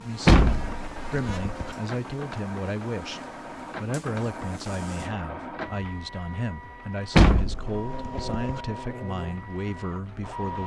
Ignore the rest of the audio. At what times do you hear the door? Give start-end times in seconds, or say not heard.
0.2-1.8, 7.2-8.6.